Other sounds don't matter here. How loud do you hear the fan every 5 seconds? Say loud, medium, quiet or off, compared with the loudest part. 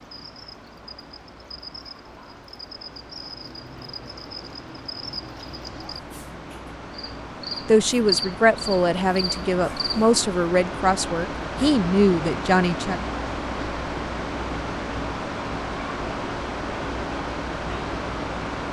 quiet, medium, loud, loud.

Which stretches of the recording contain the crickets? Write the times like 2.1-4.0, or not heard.
0.0-10.2.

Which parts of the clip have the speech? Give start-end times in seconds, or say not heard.
7.7-13.0.